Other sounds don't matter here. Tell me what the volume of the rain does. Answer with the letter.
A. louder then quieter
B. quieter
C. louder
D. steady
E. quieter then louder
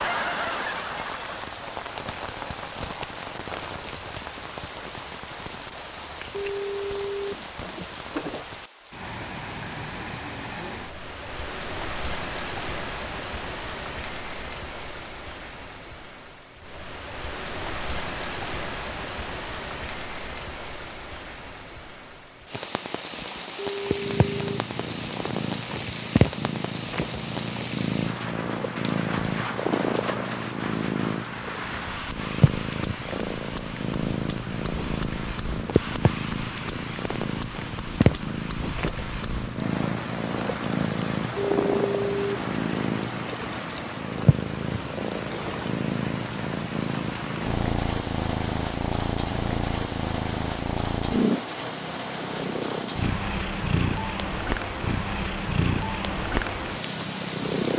D.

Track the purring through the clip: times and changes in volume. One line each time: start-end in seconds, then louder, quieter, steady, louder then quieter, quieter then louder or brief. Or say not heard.
23.8-57.7 steady.